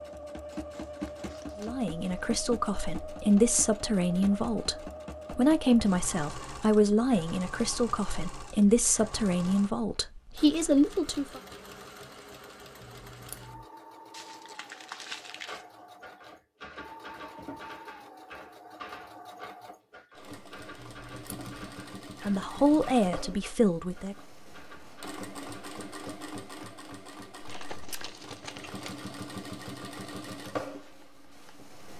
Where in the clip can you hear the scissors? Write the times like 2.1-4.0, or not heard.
12.8-13.7, 20.8-21.6.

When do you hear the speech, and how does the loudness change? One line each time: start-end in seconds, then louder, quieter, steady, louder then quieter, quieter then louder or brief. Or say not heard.
1.6-11.4 steady
22.2-24.1 brief.